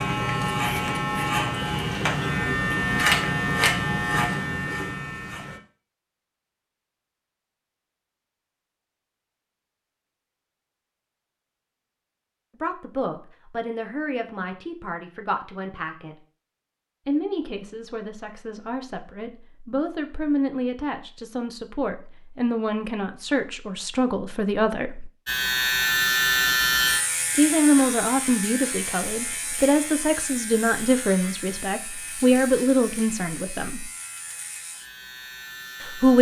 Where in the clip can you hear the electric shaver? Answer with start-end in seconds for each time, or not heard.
0.0-5.6, 25.2-36.1.